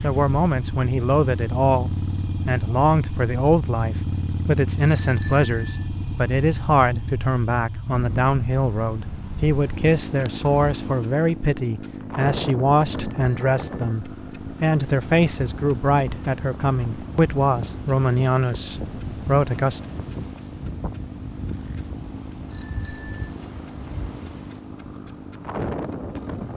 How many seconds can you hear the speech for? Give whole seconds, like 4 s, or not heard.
20 s.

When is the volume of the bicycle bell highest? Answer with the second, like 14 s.
5 s.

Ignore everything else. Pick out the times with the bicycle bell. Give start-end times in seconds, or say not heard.
4.8-5.8, 12.9-14.0, 22.5-23.3.